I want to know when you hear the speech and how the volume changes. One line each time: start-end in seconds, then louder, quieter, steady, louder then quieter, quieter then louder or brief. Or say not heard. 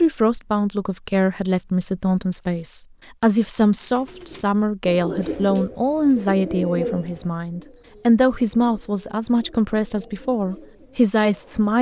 0.0-11.7 steady.